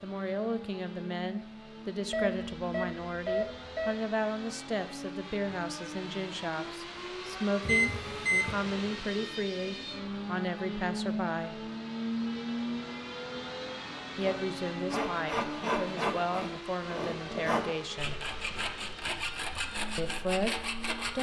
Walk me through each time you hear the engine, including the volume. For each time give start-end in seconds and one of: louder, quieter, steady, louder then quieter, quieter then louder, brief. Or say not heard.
0.0-21.1 louder then quieter.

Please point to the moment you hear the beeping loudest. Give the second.
8 s.